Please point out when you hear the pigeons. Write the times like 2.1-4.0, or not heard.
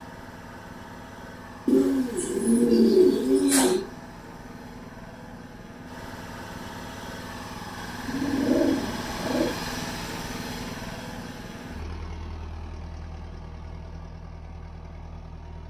1.6-3.9, 8.1-9.5.